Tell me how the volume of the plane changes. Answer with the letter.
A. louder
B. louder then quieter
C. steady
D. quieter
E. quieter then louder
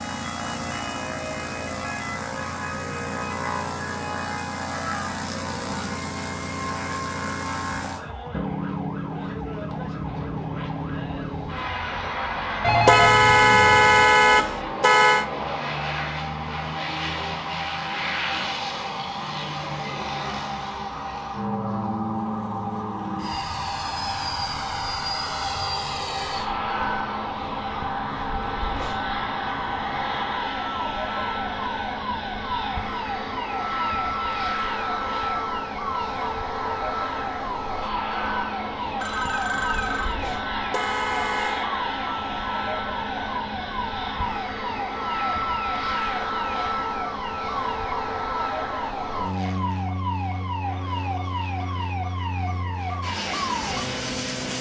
C.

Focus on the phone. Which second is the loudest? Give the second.
13 s.